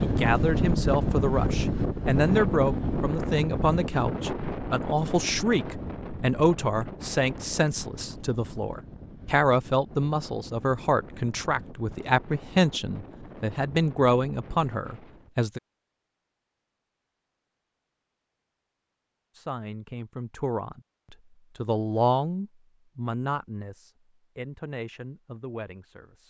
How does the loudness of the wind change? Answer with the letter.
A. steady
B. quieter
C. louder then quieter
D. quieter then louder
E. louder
B.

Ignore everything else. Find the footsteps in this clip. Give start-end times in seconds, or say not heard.
not heard.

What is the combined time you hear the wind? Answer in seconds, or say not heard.
15 s.